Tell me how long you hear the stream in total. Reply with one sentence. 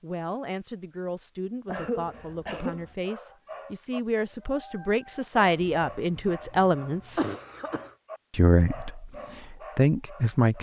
You can't hear the stream here.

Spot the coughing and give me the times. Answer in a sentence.
The coughing can be heard from 1.6 to 3.0 s and from 5.4 to 7.9 s.